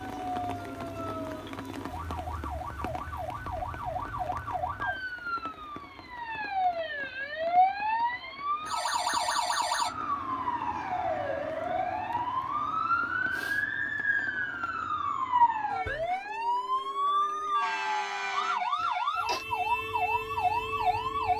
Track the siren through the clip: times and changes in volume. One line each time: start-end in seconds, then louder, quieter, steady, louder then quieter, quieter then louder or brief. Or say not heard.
0.0-21.3 louder.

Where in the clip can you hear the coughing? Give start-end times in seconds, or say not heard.
18.8-19.4.